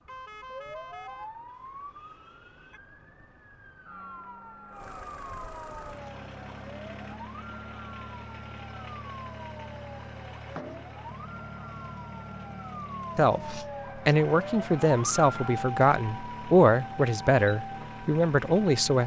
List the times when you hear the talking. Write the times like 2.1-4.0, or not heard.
13.2-19.0.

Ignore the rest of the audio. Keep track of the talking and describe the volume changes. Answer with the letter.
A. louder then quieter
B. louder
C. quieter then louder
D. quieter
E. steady
E.